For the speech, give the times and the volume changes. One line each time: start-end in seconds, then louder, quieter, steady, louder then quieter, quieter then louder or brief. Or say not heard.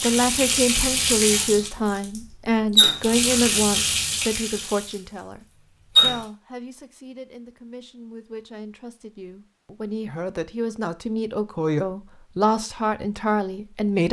0.0-14.0 quieter then louder.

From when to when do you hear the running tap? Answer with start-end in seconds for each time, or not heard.
0.0-6.2.